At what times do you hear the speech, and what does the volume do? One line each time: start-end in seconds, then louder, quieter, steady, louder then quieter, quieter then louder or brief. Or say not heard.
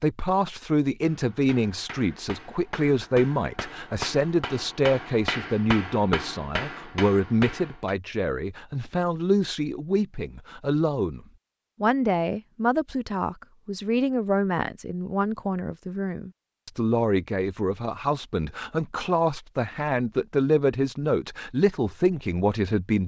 0.0-23.0 steady.